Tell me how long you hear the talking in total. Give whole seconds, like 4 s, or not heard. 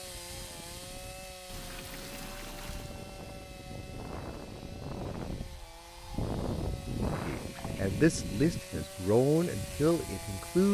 3 s.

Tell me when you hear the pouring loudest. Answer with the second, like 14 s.
2 s.